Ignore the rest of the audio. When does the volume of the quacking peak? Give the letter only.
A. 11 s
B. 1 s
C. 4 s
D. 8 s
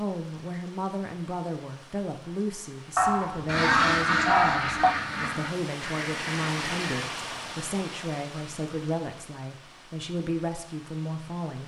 C.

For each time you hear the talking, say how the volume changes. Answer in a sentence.
The talking can be heard from 0.0 to 11.6 s, at a steady volume.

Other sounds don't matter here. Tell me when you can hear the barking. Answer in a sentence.
You can hear the barking from 3.0 to 5.0 s.